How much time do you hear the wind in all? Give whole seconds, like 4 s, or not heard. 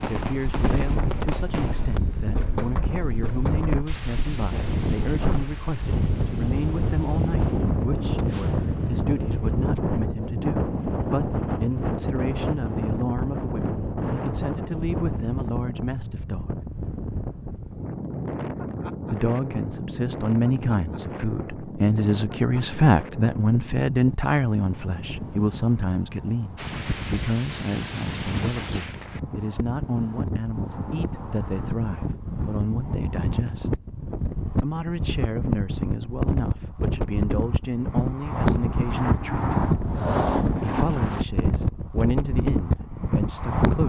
44 s.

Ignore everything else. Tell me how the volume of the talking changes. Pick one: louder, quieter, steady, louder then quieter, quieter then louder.
louder then quieter.